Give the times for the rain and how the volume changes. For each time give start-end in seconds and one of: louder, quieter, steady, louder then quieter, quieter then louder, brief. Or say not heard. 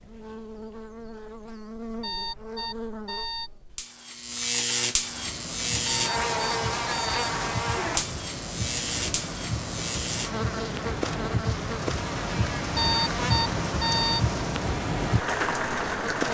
5.0-16.3 louder.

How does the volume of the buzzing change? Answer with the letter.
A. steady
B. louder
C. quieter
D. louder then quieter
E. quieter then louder
D.